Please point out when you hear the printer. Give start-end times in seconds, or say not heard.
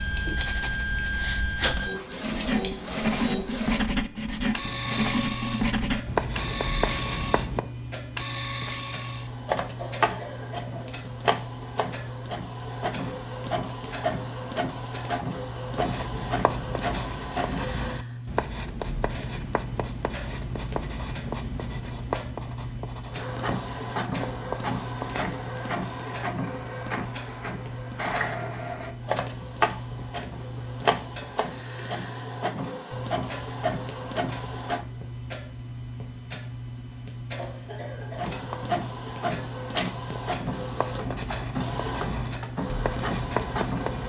0.0-18.0, 23.1-34.9, 38.1-44.0.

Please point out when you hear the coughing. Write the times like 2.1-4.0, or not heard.
9.8-11.0, 37.4-38.3.